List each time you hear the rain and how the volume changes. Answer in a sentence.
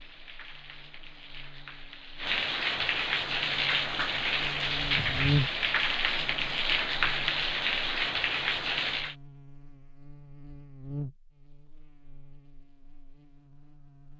The rain can be heard from 0.0 to 9.2 s, getting louder.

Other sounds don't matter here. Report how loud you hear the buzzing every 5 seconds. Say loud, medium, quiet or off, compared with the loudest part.
quiet, loud, medium.